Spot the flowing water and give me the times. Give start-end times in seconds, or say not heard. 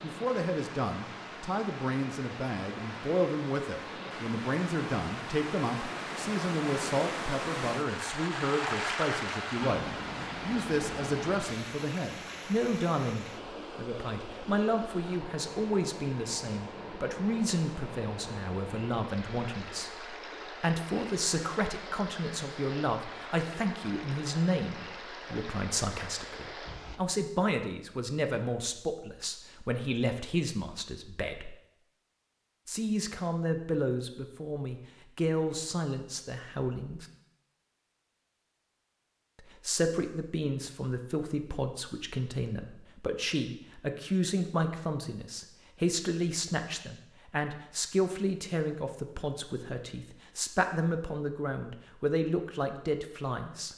0.0-27.0.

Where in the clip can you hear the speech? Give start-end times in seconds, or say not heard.
0.0-31.6, 32.6-37.0, 39.6-53.7.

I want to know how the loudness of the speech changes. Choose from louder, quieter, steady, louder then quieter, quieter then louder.
steady.